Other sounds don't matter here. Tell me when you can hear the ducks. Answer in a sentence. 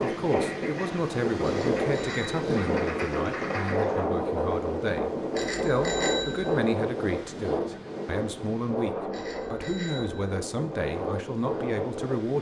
The ducks can be heard from 0.0 to 4.0 s.